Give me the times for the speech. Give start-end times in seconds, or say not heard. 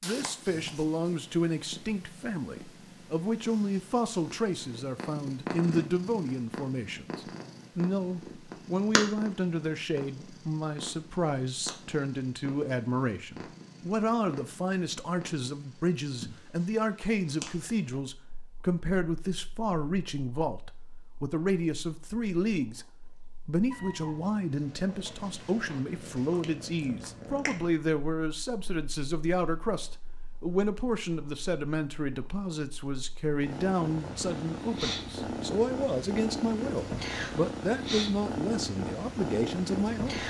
0.0-40.2.